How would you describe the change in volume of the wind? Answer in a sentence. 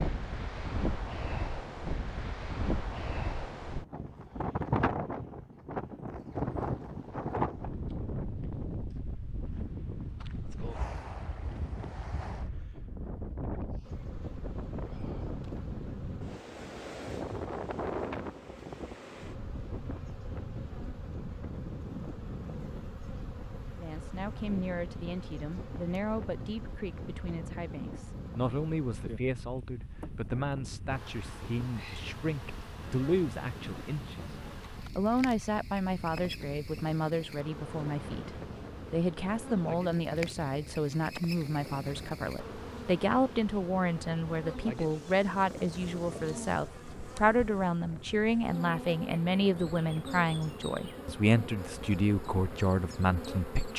The volume of the wind goes down.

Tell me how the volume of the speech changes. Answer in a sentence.
The volume of the speech goes up.